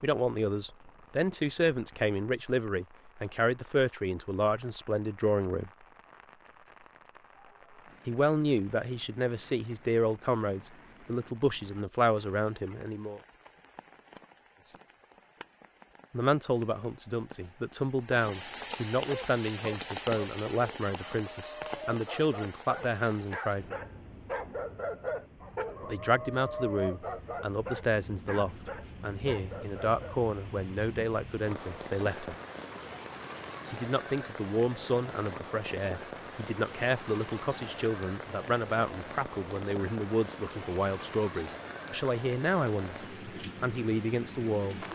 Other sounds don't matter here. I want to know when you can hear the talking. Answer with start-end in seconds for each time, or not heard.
0.0-5.7, 8.1-13.2, 16.1-23.6, 25.8-32.4, 33.7-44.9.